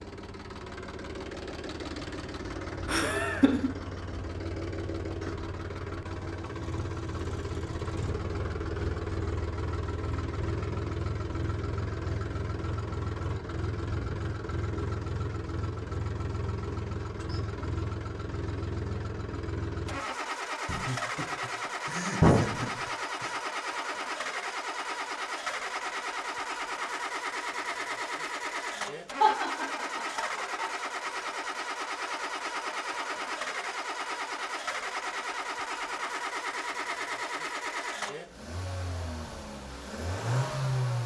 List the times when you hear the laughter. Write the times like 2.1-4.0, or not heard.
2.9-3.7, 20.6-23.3, 29.2-30.7.